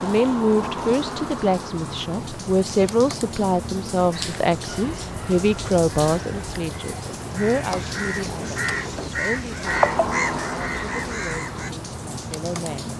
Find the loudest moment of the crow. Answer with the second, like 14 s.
10 s.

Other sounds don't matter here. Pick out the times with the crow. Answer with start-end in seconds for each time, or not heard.
4.1-11.7.